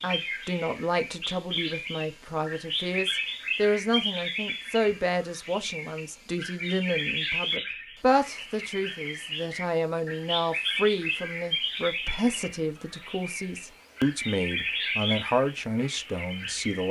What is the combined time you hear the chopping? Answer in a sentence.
You can't hear the chopping here.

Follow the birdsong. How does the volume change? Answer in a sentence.
The volume of the birdsong stays about the same.